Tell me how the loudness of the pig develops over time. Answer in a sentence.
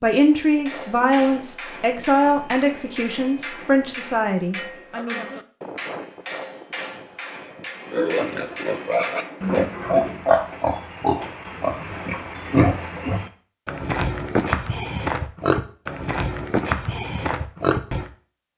The volume of the pig stays about the same.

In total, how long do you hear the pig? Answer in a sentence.
The pig can be heard for 10 seconds in total.